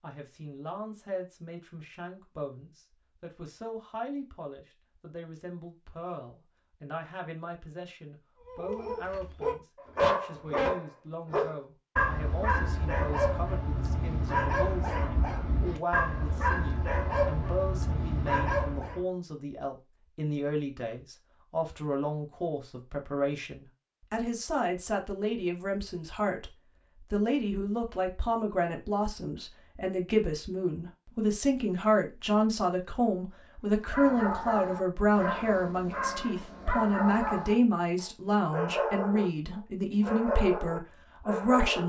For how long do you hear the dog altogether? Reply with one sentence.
The dog can be heard for 19 seconds in total.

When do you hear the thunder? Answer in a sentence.
You can't hear the thunder here.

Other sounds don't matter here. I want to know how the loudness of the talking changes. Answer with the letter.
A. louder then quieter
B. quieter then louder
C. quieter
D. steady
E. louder
E.